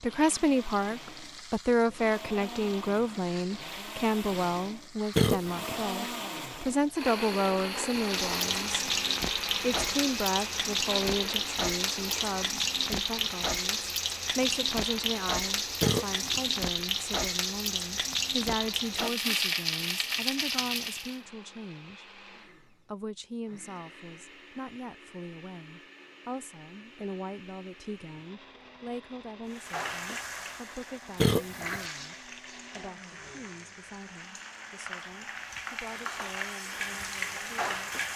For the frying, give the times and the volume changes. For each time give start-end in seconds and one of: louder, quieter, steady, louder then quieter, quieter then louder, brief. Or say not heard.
0.0-21.2 louder
29.5-38.1 quieter then louder.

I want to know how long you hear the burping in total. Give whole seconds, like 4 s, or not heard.
2 s.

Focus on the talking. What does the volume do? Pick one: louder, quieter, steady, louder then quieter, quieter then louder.
quieter.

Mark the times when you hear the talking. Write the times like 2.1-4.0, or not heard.
0.0-8.8, 9.6-37.9.